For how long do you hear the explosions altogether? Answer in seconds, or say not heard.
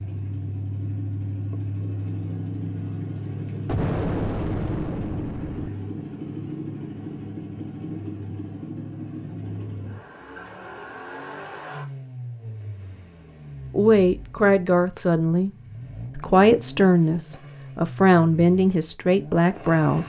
2 s.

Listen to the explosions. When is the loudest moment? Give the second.
4 s.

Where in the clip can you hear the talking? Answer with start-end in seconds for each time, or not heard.
13.7-15.5, 16.1-20.0.